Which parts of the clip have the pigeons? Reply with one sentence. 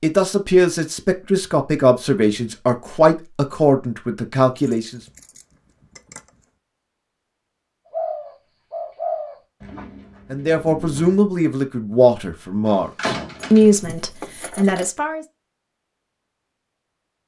You can hear the pigeons from 7.9 to 11.2 s.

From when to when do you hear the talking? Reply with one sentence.
You can hear the talking from 0.0 to 5.0 s and from 10.3 to 15.2 s.